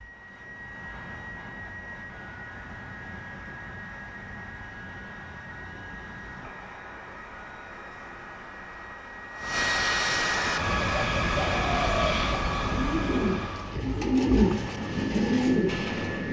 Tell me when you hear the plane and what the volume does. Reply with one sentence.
You can hear the plane from 0.0 to 16.2 s, getting louder then quieter.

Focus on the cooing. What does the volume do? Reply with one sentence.
The loudness of the cooing goes up.